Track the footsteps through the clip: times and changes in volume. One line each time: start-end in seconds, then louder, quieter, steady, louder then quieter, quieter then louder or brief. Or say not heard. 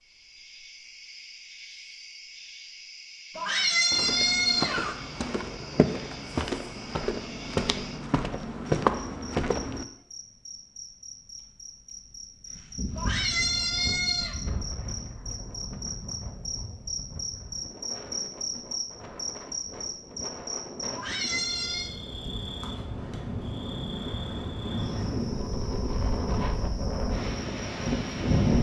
3.9-9.8 louder.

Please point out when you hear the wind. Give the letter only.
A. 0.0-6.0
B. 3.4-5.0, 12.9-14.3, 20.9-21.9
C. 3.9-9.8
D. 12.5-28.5
D.